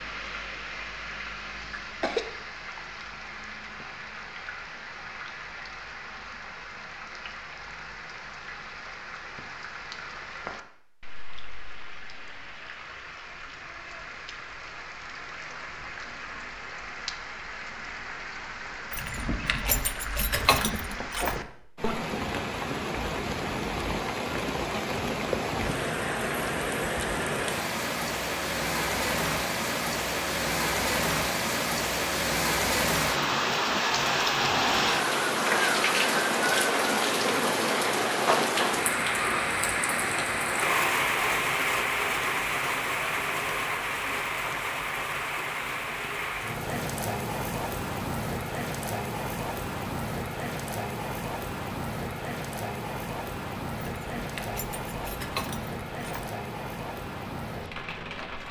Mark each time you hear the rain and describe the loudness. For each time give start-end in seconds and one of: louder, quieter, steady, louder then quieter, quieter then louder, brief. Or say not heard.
0.0-58.4 louder then quieter.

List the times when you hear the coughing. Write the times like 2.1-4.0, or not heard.
1.7-2.3.